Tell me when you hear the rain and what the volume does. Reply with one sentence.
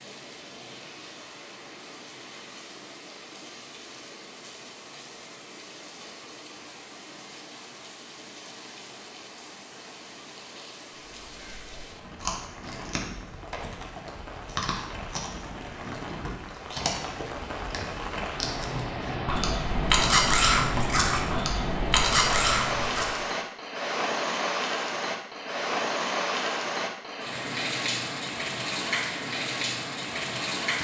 You can hear the rain from 0.0 to 30.7 s, getting louder.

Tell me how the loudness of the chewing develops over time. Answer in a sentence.
The loudness of the chewing goes up.